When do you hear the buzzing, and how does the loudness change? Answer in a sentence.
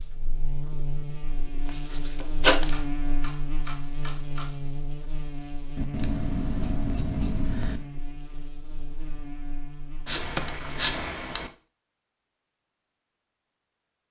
The buzzing can be heard from 0.0 to 10.9 s, getting quieter.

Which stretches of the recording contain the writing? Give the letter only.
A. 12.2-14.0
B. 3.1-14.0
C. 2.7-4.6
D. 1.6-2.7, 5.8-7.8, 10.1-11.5
D.